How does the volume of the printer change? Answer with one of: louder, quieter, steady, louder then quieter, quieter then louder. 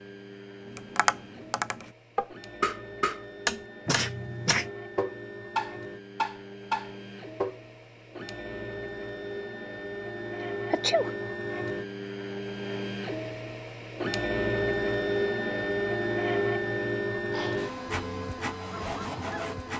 louder.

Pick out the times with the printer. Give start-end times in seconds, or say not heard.
0.0-19.7.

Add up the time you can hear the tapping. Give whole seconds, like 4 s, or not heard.
7 s.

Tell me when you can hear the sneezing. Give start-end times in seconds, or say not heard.
3.9-4.7, 10.7-11.3, 17.1-17.8.